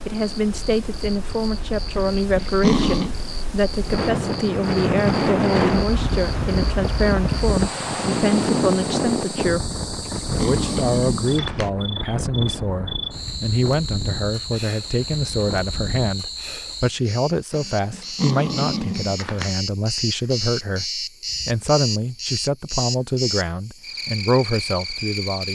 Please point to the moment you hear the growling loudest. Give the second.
3 s.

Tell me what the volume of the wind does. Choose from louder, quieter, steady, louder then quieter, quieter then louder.
louder then quieter.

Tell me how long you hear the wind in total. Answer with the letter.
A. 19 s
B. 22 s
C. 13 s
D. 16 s
D.